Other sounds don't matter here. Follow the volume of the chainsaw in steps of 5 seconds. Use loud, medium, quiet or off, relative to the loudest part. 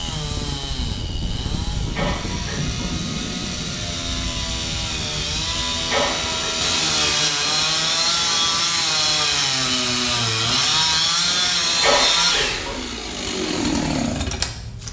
medium, loud, loud.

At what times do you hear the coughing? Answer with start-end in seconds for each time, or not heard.
1.9-2.9, 5.8-6.5, 11.8-12.8.